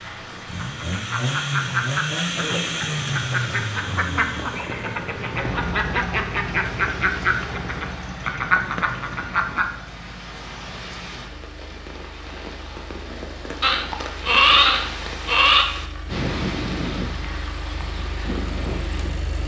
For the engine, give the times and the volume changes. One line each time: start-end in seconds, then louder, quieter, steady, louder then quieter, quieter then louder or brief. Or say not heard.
0.0-19.4 quieter then louder.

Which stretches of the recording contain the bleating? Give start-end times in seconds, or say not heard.
13.6-15.7.